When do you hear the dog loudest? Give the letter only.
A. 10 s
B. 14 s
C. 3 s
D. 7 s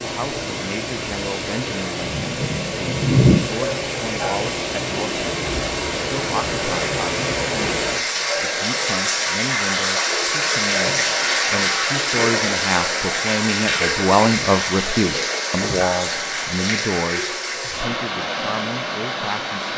C.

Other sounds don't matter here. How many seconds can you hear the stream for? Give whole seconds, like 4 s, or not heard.
20 s.